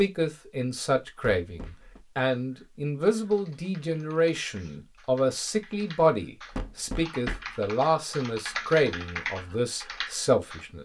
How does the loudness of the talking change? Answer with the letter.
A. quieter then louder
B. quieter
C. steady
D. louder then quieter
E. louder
C.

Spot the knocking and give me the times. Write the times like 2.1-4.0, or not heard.
1.4-2.0, 6.5-7.8.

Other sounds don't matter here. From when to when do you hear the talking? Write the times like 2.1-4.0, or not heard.
0.0-10.8.